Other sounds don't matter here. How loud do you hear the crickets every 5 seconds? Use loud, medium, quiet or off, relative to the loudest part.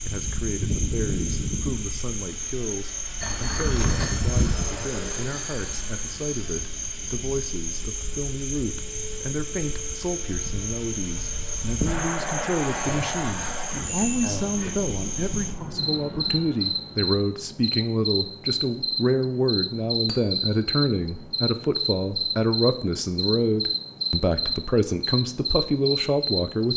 medium, medium, medium, loud, loud, loud.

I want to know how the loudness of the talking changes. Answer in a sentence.
The volume of the talking goes up.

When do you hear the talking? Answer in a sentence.
The talking can be heard from 0.1 to 26.7 s.